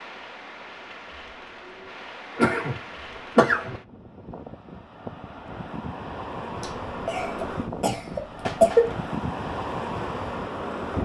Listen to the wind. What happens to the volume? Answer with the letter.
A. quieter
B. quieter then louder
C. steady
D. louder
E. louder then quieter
D.